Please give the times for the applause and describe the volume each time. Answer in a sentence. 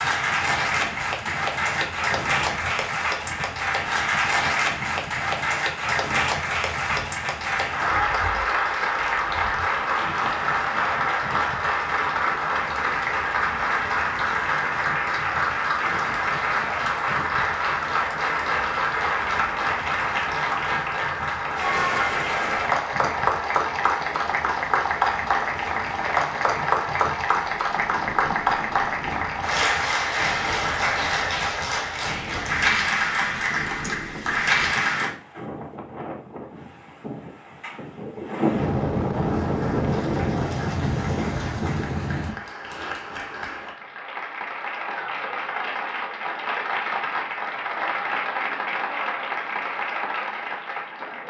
You can hear the applause from 0.0 to 35.1 s, at a steady volume; and from 39.2 to 51.2 s, getting louder.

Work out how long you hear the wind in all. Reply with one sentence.
The wind can be heard for 42 seconds in total.